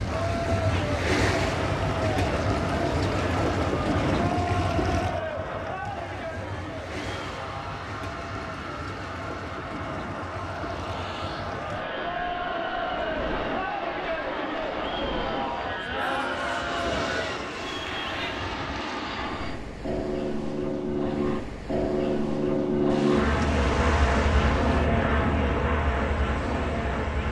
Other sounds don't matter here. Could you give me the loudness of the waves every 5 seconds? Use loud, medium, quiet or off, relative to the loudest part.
loud, medium, medium, medium, medium, medium.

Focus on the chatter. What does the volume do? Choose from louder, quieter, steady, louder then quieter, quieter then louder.
quieter then louder.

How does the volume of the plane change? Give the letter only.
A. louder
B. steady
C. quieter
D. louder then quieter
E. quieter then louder
A.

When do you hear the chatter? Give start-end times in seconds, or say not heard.
0.0-18.5.